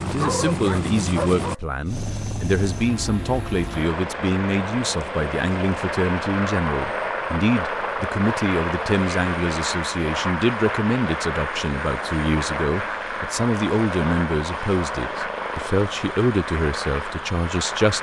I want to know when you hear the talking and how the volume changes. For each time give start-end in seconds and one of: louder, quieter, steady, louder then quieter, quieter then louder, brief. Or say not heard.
0.1-17.9 steady.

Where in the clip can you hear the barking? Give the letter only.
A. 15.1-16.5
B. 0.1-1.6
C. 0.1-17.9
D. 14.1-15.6
B.